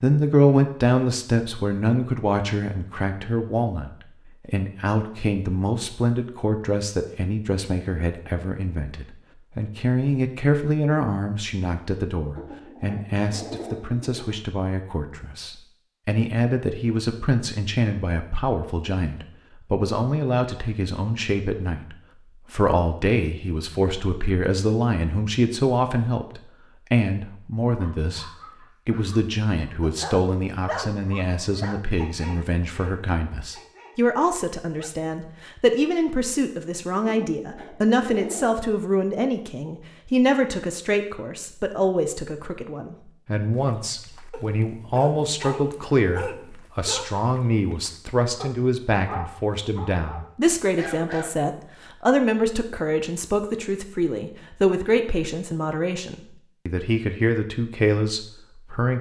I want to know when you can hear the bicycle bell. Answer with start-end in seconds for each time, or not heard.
not heard.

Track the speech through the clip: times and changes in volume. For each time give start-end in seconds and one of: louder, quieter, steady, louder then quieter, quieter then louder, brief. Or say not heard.
0.0-58.9 steady.